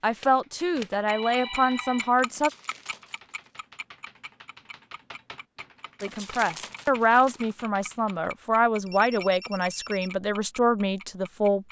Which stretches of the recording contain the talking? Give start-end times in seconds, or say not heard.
0.0-2.5, 6.0-11.6.